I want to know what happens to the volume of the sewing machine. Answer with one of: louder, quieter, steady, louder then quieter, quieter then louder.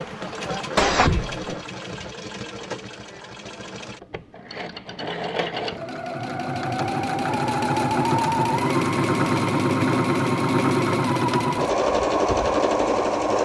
louder.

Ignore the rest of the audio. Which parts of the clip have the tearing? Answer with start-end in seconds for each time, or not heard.
not heard.